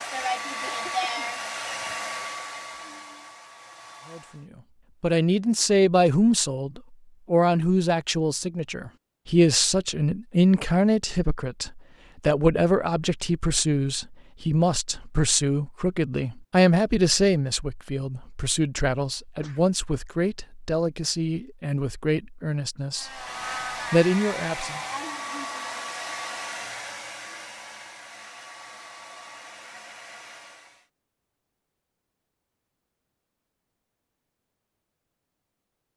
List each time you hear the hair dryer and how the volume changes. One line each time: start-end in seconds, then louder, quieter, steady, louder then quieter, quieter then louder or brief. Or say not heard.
0.0-4.5 quieter
22.9-30.9 quieter.